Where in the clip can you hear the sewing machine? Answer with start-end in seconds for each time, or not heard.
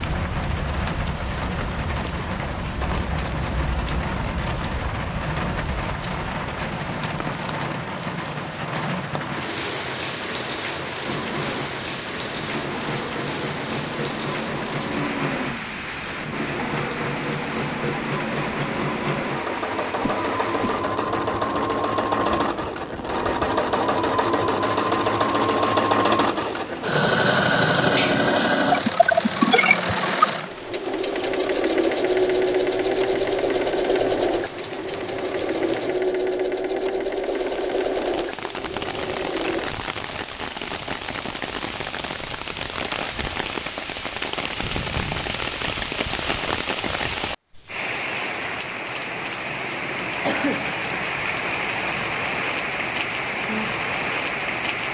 11.1-39.7.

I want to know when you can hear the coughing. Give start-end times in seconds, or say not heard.
20.0-20.9, 50.2-50.7.